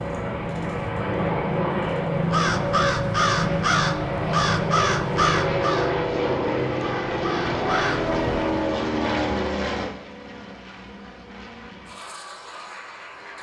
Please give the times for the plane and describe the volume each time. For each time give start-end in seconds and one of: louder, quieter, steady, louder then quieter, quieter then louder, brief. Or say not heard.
0.0-13.3 quieter.